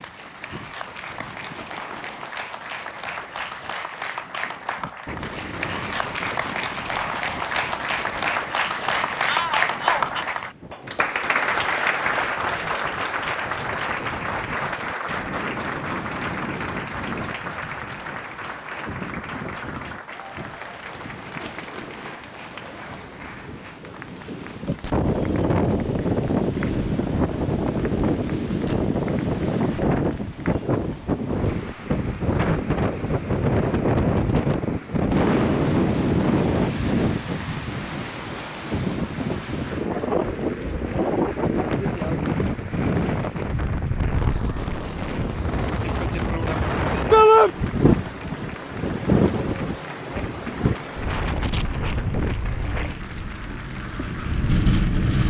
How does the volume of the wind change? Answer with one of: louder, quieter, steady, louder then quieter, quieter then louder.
louder.